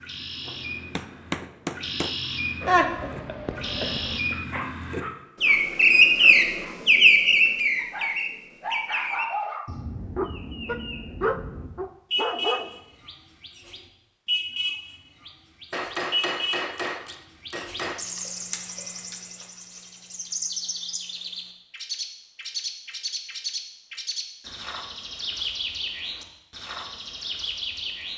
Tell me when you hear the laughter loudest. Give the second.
3 s.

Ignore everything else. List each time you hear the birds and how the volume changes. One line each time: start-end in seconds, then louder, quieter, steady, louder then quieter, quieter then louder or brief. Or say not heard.
0.0-28.1 louder then quieter.